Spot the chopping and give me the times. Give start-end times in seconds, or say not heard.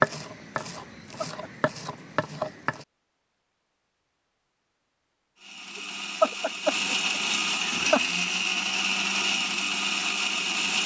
0.0-2.9.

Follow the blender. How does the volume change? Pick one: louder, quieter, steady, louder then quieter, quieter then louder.
louder.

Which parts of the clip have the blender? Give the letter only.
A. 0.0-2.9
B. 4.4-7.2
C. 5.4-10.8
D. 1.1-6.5
C.